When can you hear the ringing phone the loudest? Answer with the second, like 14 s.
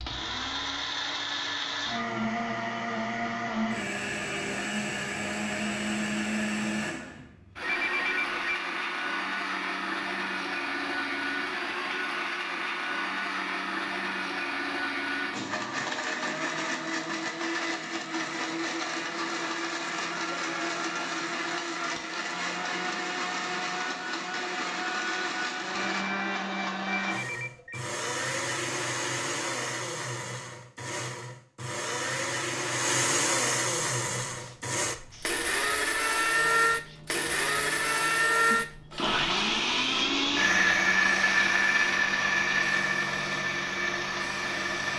8 s.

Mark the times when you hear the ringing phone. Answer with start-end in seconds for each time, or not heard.
7.6-8.6, 27.1-27.9.